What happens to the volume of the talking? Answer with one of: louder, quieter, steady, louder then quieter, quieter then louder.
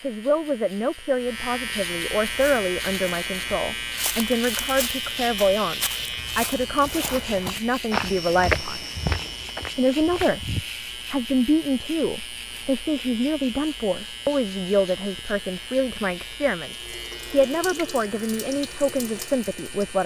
steady.